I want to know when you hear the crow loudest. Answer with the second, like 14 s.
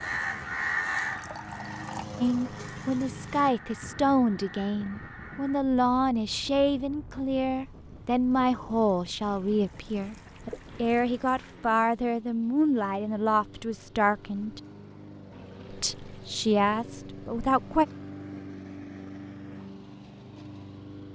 1 s.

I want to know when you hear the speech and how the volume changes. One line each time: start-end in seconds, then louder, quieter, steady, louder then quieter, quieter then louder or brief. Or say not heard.
2.2-14.6 steady
15.7-17.9 brief.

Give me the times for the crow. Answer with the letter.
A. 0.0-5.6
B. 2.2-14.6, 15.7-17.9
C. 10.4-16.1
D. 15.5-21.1
A.